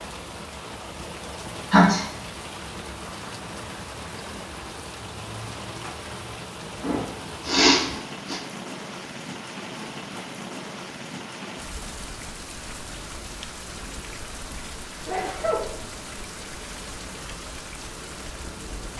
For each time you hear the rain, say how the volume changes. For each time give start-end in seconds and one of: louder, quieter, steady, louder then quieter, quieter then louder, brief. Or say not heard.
0.0-18.9 steady.